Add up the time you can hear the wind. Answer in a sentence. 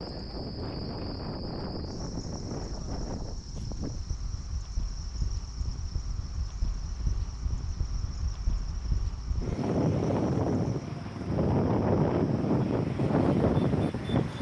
You can hear the wind for 14 seconds altogether.